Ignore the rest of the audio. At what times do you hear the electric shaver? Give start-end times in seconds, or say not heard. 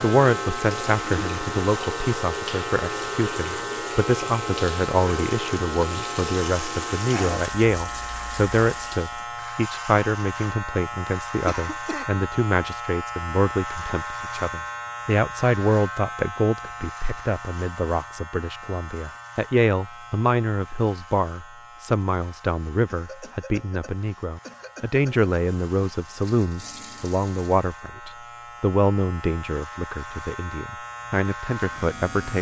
0.0-32.3.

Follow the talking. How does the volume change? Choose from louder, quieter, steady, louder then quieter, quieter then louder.
steady.